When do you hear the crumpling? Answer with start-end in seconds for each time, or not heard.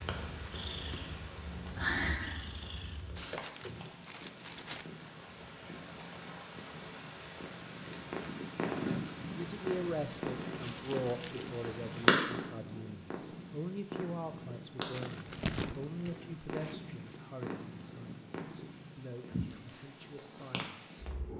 3.1-5.0, 10.6-11.5, 14.9-16.9.